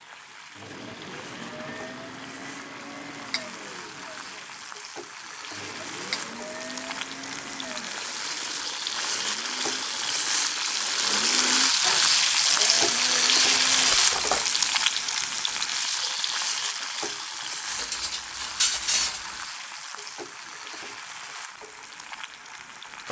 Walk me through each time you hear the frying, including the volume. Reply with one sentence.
The frying can be heard from 0.0 to 23.0 s, getting louder then quieter.